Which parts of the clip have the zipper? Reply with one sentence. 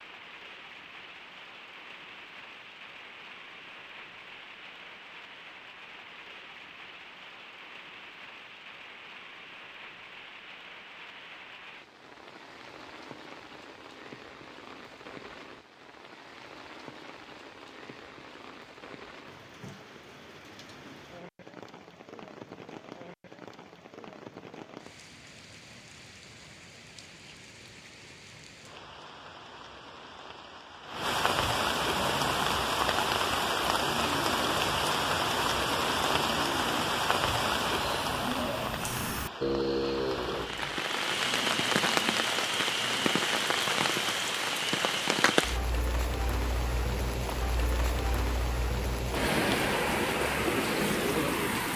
The zipper can't be heard in this clip.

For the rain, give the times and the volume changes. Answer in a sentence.
The rain can be heard from 0.0 to 51.7 s, getting louder.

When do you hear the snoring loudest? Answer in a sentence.
The volume of the snoring peaks at 40 seconds.